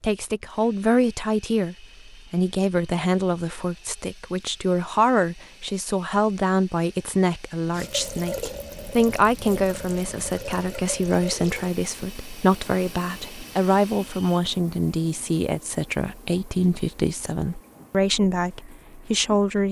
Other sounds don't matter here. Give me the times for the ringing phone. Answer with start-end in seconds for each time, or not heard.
not heard.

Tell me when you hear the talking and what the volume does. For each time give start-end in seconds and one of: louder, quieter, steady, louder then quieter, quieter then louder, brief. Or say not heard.
0.0-19.6 steady.